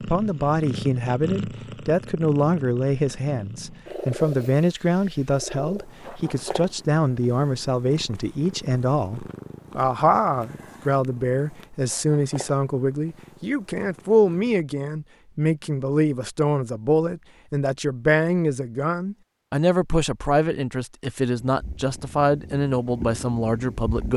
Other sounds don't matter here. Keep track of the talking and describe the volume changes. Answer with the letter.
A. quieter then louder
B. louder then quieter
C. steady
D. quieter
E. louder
C.